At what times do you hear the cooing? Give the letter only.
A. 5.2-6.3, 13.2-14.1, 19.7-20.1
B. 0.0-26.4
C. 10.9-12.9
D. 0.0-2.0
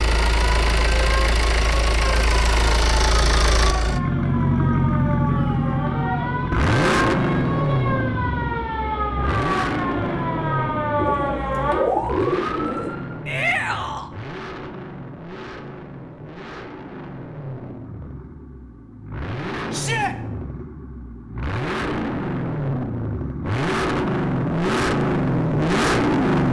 C.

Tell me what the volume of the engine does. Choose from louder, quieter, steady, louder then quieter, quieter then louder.
quieter then louder.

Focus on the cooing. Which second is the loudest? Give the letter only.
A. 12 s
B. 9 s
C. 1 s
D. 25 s
A.